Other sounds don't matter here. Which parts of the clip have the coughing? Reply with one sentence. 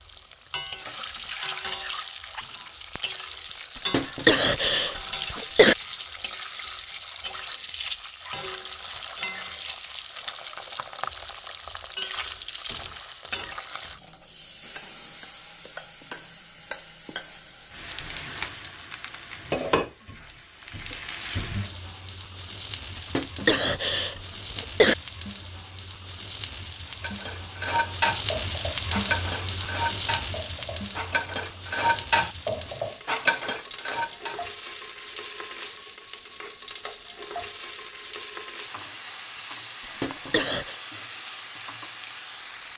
The coughing can be heard from 3.8 to 5.8 s, from 22.9 to 24.9 s and from 40.0 to 40.8 s.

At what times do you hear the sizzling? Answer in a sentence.
You can hear the sizzling from 0.0 to 42.7 s.